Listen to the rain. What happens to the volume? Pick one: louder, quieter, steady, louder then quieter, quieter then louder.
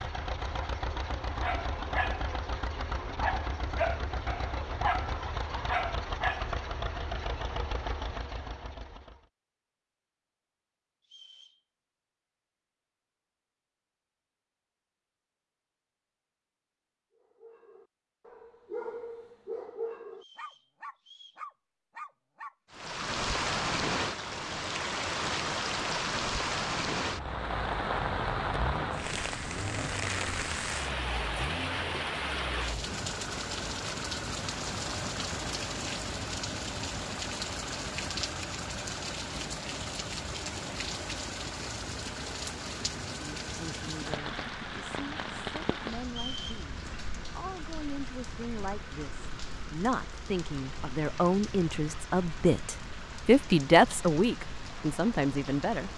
quieter.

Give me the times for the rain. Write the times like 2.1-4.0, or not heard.
22.7-55.9.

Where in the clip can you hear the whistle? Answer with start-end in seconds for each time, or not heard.
11.0-11.6, 20.1-21.4, 46.0-46.5.